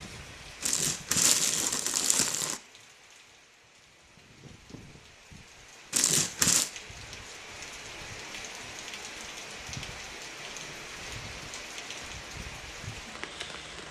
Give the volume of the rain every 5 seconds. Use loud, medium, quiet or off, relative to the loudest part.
medium, loud, loud.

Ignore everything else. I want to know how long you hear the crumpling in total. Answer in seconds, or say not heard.
5 s.